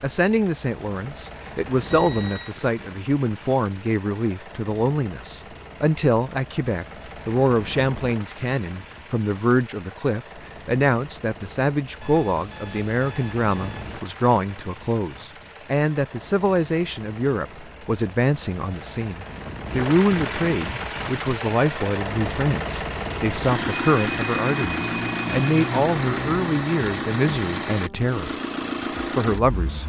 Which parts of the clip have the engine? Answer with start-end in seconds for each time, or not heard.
0.0-29.8.